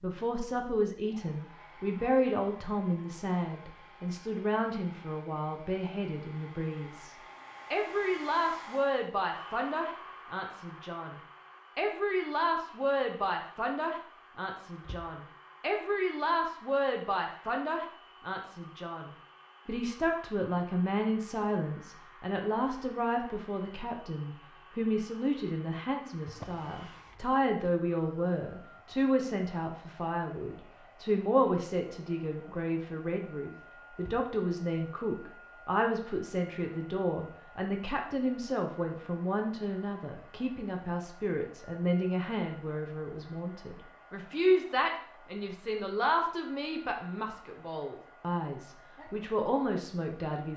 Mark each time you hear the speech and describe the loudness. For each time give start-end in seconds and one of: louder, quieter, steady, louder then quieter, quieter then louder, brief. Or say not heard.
0.0-50.5 steady.